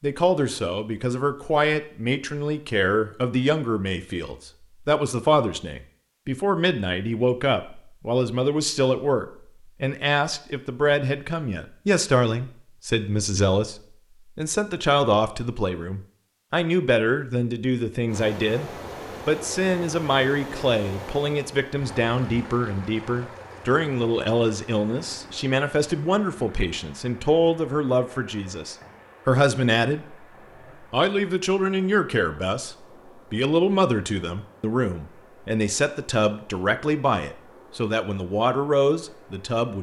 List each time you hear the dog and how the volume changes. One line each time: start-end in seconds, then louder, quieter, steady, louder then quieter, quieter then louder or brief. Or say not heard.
not heard.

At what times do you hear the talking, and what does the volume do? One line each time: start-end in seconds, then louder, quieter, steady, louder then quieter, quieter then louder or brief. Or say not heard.
0.0-39.7 steady.